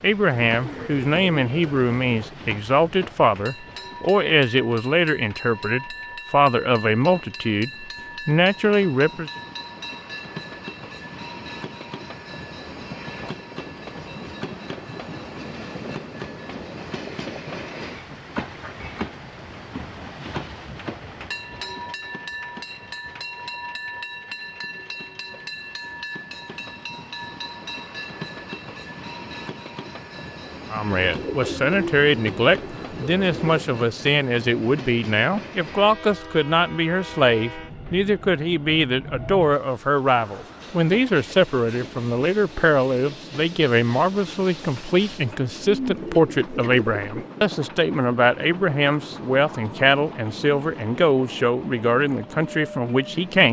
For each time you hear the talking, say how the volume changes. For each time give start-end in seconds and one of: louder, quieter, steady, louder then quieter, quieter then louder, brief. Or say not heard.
0.0-9.3 steady
30.7-53.4 steady.